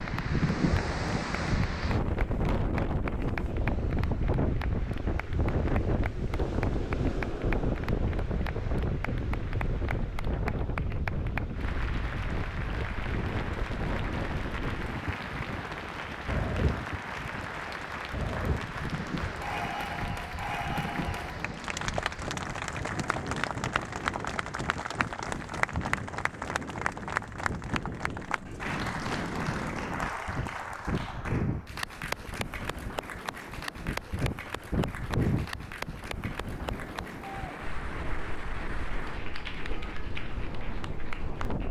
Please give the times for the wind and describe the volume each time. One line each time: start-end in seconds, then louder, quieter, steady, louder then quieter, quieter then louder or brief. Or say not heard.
0.0-41.6 quieter.